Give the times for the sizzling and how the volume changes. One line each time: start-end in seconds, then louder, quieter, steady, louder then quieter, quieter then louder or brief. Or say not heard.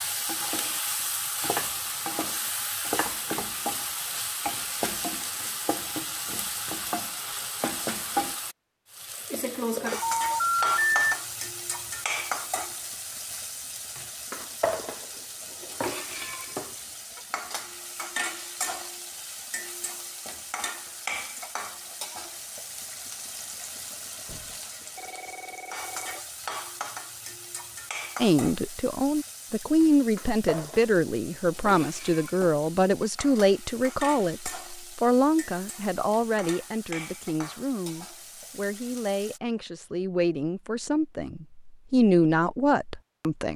0.0-39.4 quieter.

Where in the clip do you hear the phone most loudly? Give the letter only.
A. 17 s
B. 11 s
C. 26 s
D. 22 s
B.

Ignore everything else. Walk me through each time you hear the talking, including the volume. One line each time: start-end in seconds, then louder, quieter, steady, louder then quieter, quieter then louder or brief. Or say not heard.
28.2-43.5 quieter then louder.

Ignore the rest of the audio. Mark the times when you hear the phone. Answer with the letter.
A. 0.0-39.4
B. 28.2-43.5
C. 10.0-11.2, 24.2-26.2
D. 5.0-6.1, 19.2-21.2
C.